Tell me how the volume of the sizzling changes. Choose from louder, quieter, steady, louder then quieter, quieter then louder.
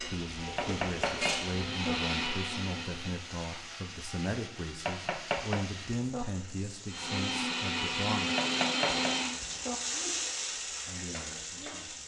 louder.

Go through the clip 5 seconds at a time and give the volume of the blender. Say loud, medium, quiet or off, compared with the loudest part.
medium, loud, off.